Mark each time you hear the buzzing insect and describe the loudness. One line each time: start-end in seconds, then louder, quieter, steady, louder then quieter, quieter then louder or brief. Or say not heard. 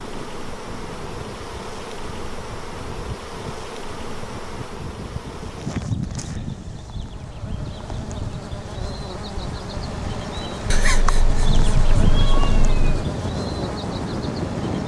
0.0-14.8 louder.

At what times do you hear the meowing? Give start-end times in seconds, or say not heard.
10.7-13.1.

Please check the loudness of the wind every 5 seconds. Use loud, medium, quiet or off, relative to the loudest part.
medium, medium, loud.